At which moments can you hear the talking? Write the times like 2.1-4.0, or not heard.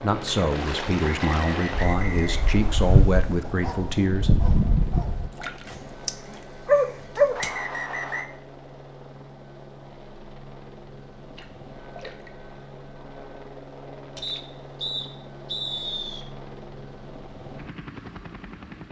0.0-4.3.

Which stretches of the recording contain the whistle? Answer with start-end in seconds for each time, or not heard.
1.0-3.0, 7.3-8.2, 14.2-16.2.